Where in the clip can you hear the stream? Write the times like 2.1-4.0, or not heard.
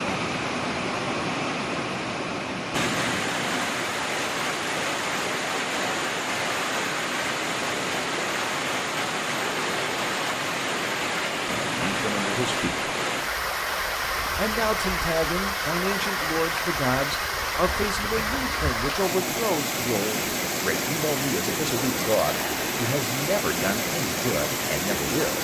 0.0-25.3.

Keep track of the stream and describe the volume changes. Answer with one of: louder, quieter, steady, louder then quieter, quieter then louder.
steady.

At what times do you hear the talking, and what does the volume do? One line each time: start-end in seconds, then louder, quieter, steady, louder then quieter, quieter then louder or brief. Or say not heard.
11.8-12.9 brief
14.3-25.3 steady.